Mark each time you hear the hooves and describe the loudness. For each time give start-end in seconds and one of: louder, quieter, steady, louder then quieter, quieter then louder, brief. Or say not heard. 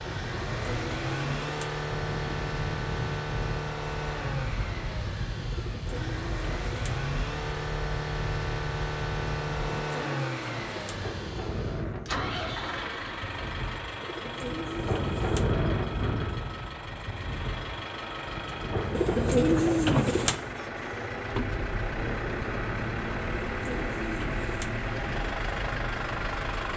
not heard.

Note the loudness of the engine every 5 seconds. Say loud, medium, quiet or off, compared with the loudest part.
loud, loud, loud, medium, loud, loud.